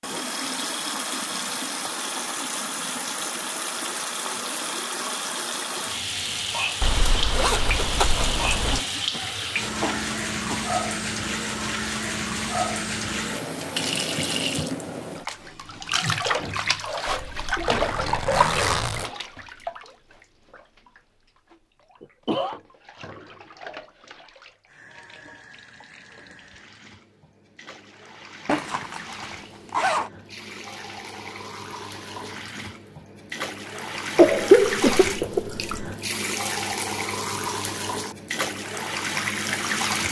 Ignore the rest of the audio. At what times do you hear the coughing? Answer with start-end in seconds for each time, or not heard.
8.5-10.8, 22.0-22.6, 34.1-35.6.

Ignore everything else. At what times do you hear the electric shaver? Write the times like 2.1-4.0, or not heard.
not heard.